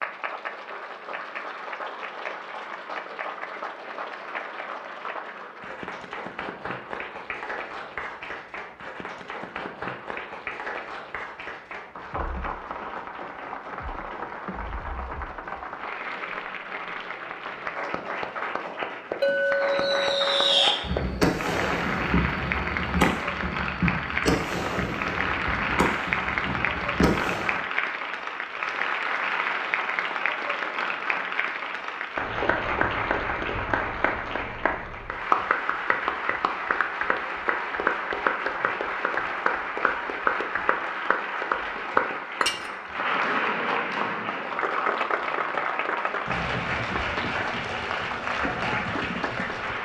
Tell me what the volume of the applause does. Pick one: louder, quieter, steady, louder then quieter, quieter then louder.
louder.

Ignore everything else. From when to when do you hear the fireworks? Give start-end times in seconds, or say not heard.
19.2-27.6.